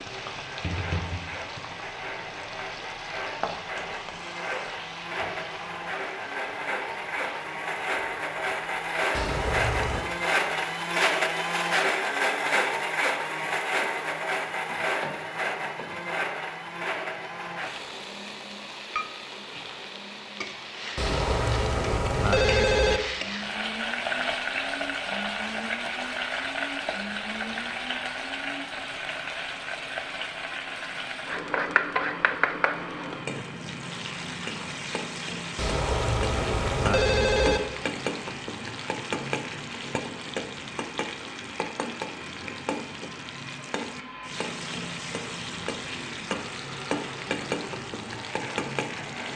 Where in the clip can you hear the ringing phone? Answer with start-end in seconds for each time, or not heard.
9.1-10.1, 20.9-23.0, 35.5-37.6.